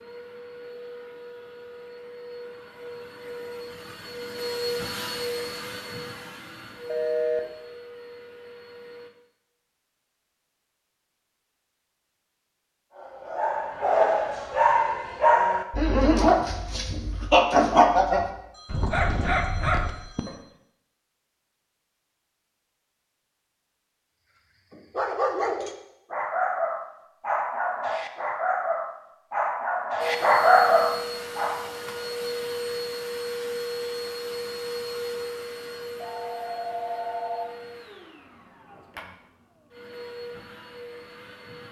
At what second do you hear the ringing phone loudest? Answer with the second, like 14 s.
7 s.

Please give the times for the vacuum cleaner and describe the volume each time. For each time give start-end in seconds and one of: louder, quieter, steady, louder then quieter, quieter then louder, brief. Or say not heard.
0.0-9.1 louder then quieter
30.0-41.6 quieter.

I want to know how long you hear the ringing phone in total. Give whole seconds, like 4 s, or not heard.
4 s.